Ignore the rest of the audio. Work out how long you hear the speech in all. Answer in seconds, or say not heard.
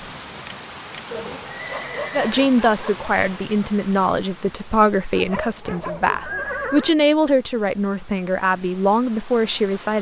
8 s.